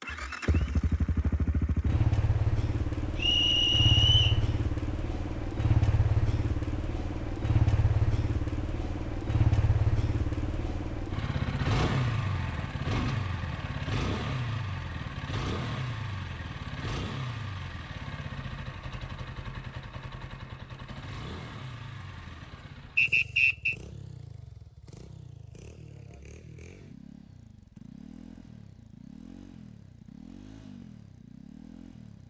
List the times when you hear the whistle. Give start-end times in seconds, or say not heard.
3.1-4.4, 22.9-23.8.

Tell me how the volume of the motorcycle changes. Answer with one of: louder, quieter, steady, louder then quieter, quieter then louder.
quieter.